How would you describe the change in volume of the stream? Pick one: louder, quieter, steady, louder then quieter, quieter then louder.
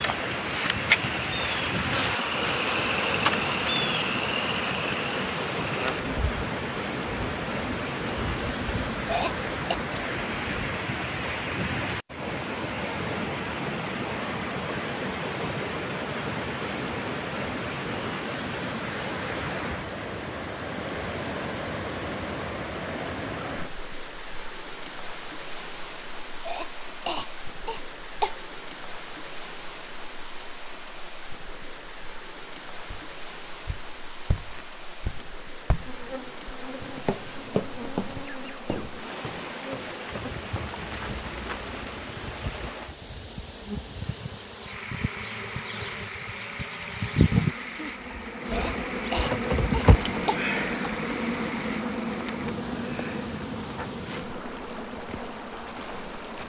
quieter.